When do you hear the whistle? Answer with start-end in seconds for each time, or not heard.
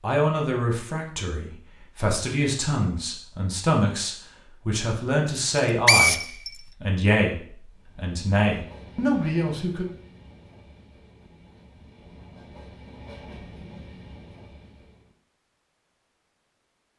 5.3-6.5.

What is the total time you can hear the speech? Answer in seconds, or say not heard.
10 s.